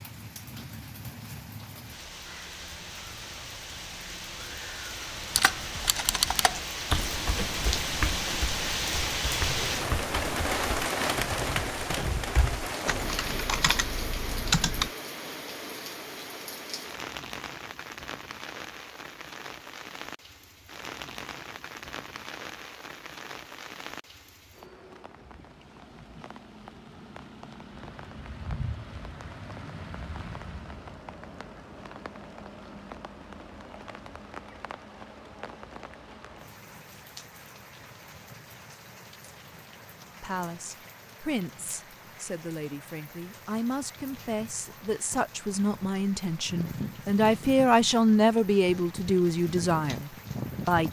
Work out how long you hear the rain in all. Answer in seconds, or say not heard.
51 s.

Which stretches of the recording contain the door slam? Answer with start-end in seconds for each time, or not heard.
not heard.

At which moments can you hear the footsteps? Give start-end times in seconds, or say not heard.
not heard.